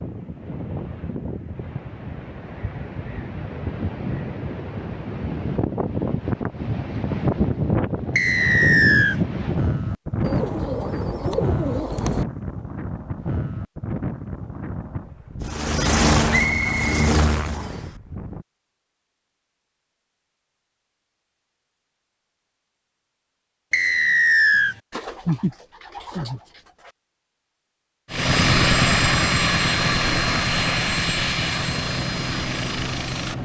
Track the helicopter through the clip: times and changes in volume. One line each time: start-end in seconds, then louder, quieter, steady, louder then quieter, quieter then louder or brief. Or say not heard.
15.4-17.8 brief
28.1-33.3 quieter.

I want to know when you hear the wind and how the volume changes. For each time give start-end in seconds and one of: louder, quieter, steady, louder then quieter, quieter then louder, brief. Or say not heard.
0.0-18.4 louder then quieter.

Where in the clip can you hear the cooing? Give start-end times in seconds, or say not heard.
10.2-12.2, 24.9-26.9.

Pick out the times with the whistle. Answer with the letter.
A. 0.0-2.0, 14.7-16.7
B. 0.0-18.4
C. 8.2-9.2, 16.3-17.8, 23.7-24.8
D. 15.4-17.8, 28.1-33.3
C.